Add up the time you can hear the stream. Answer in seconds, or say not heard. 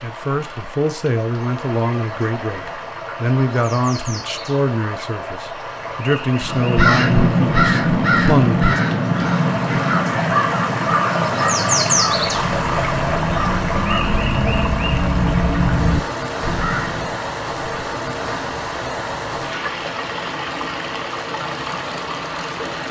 23 s.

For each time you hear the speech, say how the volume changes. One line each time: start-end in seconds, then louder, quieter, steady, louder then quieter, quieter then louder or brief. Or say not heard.
0.0-8.8 steady.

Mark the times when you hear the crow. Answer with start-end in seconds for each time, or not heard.
6.4-17.1.